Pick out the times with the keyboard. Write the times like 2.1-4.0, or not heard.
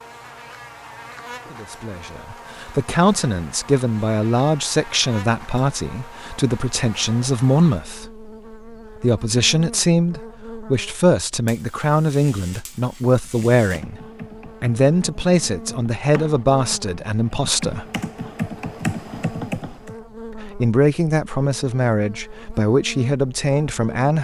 13.2-19.9.